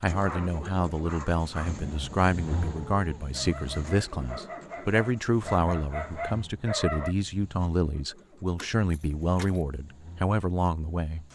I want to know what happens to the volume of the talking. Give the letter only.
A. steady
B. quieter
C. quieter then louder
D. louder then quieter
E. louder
A.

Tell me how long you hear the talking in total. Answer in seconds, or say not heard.
11 s.